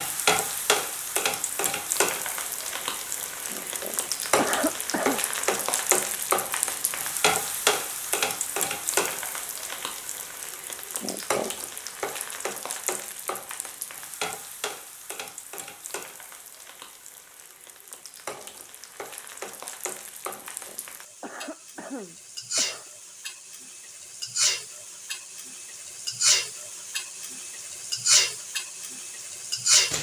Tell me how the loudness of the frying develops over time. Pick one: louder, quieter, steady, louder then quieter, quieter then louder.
quieter then louder.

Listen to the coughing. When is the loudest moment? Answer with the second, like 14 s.
5 s.